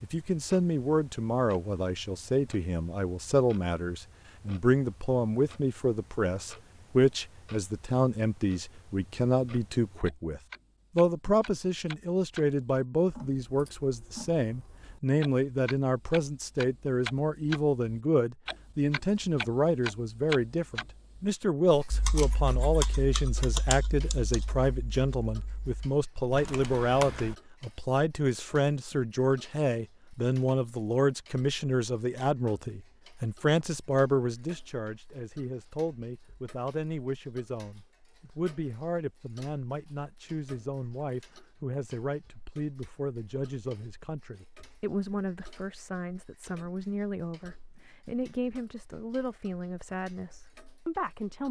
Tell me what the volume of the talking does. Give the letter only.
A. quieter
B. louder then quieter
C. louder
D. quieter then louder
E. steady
A.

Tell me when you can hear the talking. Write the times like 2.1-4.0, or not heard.
0.0-51.4.